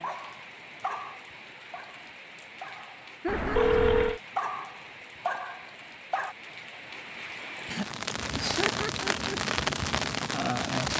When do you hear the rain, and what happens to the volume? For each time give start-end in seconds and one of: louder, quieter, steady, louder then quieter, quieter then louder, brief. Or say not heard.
0.0-10.9 louder.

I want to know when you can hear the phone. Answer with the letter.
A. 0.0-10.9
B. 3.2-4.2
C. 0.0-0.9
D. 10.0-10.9
B.